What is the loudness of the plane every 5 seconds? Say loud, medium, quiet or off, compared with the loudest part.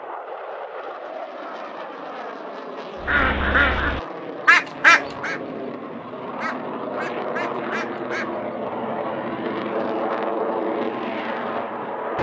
medium, loud, loud.